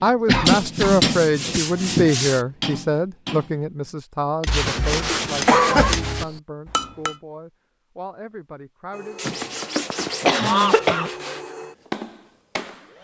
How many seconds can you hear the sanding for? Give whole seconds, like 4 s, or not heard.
6 s.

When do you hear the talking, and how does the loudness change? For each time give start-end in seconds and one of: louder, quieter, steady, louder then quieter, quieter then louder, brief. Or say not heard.
0.0-9.3 quieter.